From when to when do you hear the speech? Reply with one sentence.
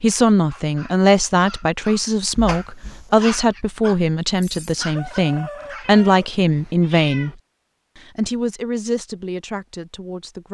You can hear the speech from 0.0 to 7.3 s and from 8.2 to 10.5 s.